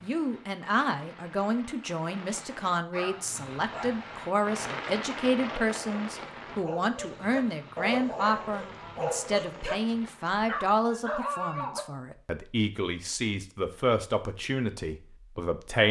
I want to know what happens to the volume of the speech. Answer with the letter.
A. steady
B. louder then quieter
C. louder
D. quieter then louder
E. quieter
A.